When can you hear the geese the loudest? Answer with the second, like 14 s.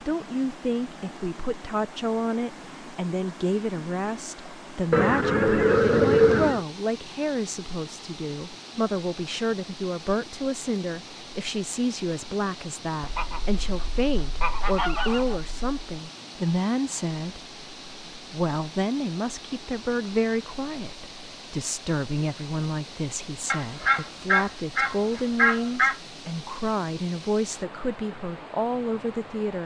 6 s.